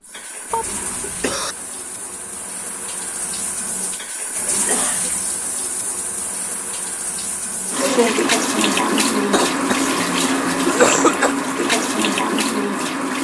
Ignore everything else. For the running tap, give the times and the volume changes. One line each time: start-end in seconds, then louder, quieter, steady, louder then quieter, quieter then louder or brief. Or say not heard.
0.0-13.1 louder.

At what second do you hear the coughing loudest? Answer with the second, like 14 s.
11 s.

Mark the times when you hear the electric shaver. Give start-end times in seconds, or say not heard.
not heard.